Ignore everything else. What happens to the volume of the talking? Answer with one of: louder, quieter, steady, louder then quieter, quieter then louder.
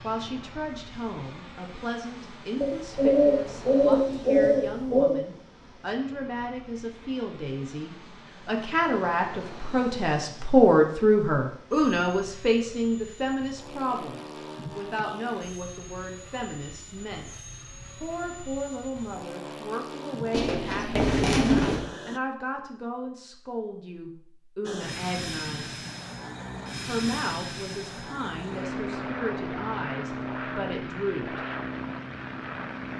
louder then quieter.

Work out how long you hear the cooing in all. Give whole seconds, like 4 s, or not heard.
4 s.